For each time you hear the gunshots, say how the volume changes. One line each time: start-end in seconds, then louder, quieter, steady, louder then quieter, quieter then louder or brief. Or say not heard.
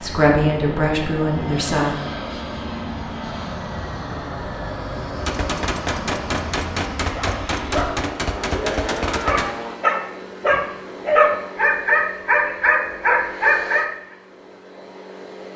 5.2-9.5 steady.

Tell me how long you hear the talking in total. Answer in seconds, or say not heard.
2 s.